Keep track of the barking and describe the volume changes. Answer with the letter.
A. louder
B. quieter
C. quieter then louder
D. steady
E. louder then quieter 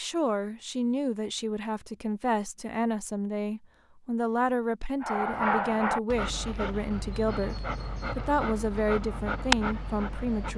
C.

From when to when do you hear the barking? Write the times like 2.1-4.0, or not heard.
5.0-10.5.